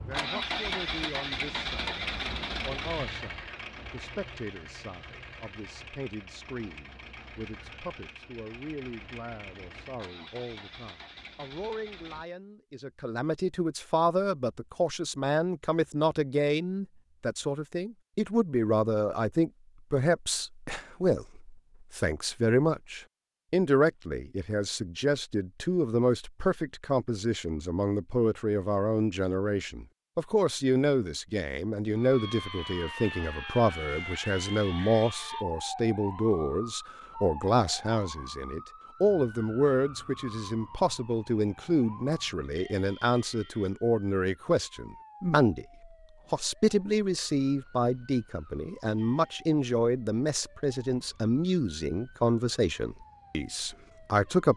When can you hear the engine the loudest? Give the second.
1 s.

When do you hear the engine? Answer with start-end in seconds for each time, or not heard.
0.0-12.2.